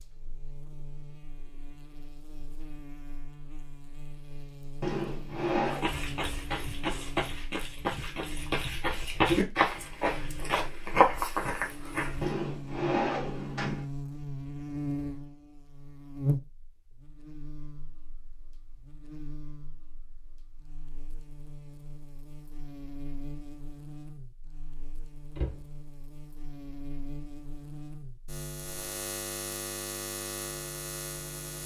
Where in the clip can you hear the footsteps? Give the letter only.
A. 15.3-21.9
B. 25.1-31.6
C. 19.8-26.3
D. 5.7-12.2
D.